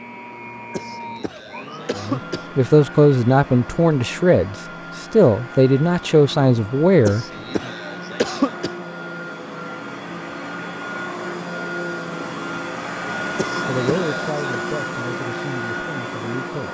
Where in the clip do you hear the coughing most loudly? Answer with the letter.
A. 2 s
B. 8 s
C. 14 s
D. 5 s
B.